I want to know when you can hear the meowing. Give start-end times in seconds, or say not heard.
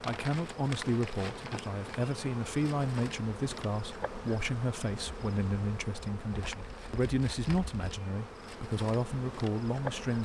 not heard.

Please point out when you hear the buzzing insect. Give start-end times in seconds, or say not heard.
0.0-10.1.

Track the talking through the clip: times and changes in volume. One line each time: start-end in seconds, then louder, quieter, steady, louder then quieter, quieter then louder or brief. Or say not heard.
0.0-10.1 steady.